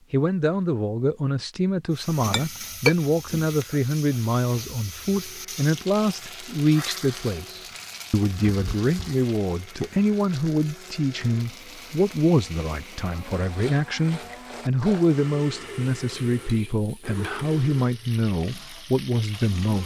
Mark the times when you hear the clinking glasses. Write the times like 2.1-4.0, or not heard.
2.1-3.0.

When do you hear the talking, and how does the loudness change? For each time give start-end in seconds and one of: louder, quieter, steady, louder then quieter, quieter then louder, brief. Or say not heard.
0.1-19.8 steady.